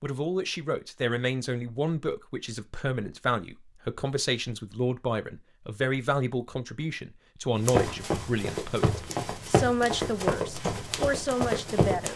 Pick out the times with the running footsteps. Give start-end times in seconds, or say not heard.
7.6-12.1.